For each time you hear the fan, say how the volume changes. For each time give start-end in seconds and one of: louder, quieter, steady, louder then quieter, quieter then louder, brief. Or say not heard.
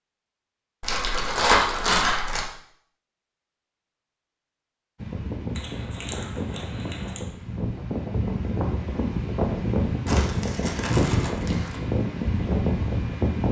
5.0-13.4 louder.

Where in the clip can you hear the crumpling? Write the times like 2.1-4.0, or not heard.
0.8-2.5, 5.5-7.2, 10.1-11.9.